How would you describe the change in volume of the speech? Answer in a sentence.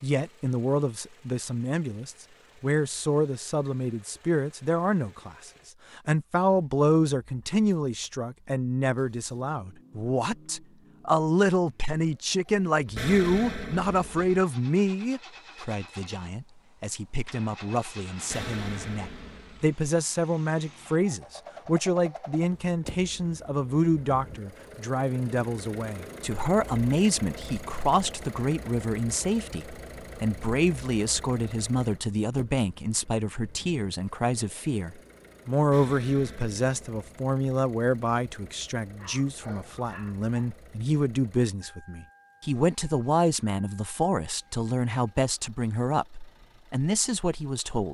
The volume of the speech stays about the same.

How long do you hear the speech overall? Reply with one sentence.
You can hear the speech for 48 seconds altogether.